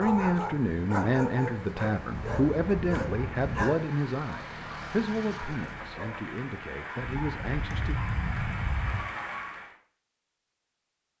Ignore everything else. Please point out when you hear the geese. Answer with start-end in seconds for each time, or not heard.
2.1-3.8, 7.1-9.0.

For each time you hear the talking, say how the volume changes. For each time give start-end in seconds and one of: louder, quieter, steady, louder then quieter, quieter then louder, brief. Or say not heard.
0.0-8.0 quieter.